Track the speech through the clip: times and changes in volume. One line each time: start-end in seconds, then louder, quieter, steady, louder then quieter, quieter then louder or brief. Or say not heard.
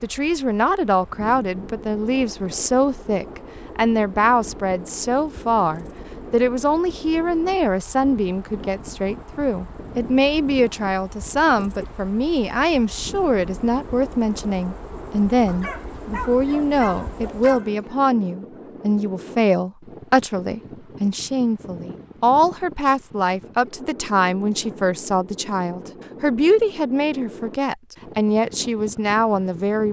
0.0-29.8 steady.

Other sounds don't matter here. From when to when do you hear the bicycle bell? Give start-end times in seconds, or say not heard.
not heard.